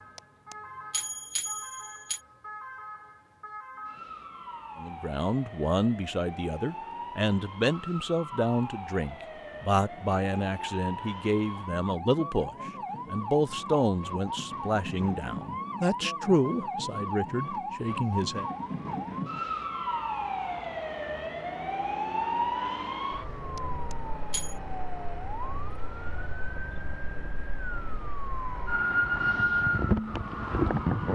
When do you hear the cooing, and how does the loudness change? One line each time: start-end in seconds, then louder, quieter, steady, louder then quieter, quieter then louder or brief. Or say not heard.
not heard.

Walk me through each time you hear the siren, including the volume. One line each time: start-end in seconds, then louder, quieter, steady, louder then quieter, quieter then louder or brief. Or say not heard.
0.0-31.0 louder.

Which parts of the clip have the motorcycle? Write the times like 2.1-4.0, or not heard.
not heard.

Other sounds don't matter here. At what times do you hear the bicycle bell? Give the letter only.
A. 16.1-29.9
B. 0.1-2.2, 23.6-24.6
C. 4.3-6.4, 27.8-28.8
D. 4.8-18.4
B.